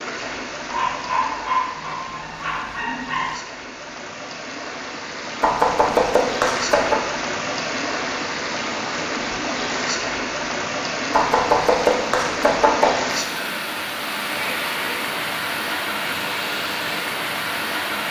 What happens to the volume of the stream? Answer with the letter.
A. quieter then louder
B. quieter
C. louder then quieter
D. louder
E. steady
D.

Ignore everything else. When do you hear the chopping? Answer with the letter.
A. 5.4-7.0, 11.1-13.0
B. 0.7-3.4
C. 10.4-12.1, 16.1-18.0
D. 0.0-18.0
A.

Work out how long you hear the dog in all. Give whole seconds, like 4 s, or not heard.
3 s.